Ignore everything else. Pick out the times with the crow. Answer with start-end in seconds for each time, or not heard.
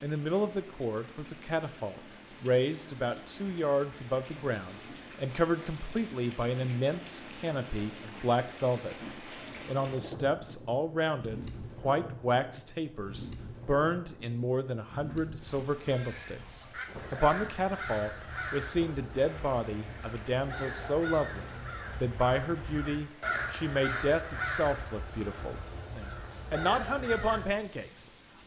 15.8-27.4.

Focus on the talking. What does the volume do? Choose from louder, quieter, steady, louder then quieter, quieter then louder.
steady.